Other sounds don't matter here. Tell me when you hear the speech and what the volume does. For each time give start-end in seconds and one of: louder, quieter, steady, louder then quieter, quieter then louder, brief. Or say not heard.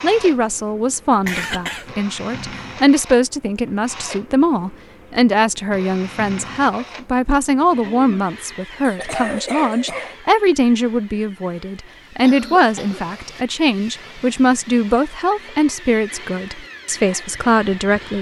0.0-18.1 steady.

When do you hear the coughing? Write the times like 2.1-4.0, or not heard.
1.2-1.9, 8.8-10.2, 12.2-13.2.